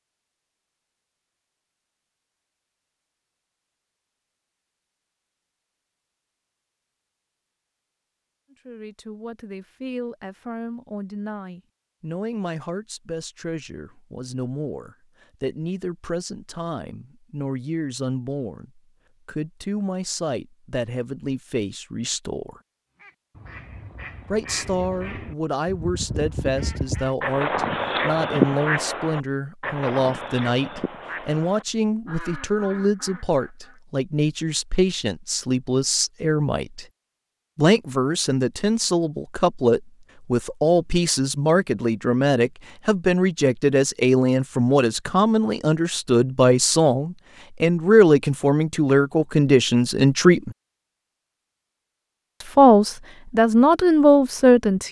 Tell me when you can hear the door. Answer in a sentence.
You can't hear the door here.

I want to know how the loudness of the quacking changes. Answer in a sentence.
The loudness of the quacking goes up, then down.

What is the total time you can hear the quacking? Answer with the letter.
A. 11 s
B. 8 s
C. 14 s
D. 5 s
A.